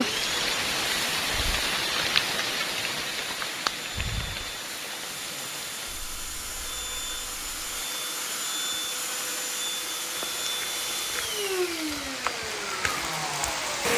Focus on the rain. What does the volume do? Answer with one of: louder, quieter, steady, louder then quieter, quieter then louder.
quieter then louder.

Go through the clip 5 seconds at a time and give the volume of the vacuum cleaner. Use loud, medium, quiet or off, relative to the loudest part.
medium, loud, loud.